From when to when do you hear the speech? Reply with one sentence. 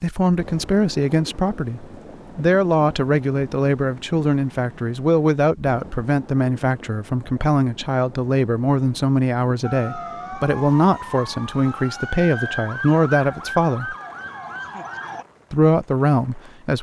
The speech can be heard from 0.0 to 13.9 s and from 15.5 to 16.7 s.